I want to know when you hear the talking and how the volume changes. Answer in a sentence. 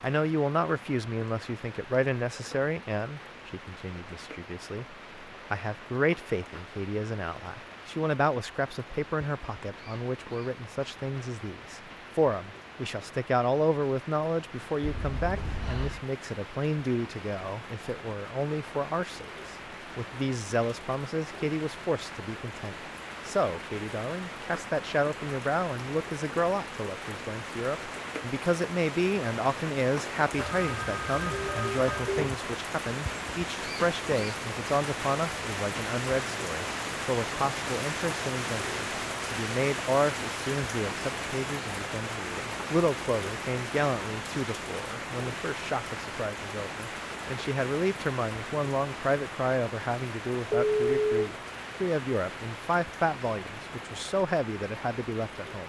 The talking can be heard from 0.0 to 55.6 s, at a steady volume.